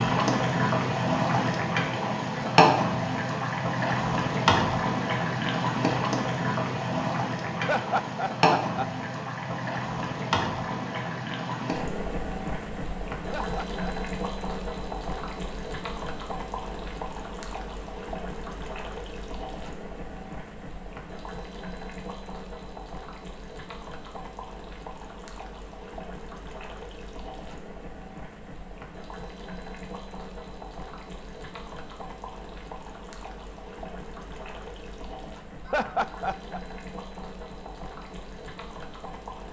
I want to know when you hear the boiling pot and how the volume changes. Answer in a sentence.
The boiling pot can be heard from 0.0 to 39.4 s, getting quieter.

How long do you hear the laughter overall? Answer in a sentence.
You can hear the laughter for 3 seconds altogether.